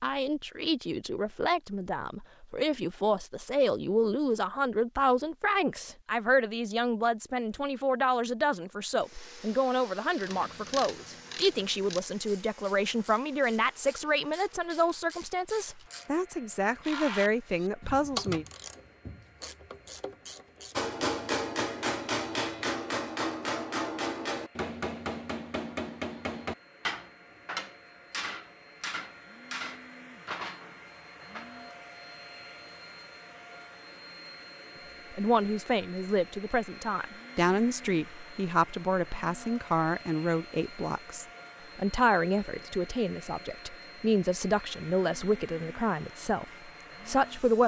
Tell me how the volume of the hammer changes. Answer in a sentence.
The volume of the hammer goes down.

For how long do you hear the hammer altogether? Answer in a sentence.
You can hear the hammer for 11 seconds altogether.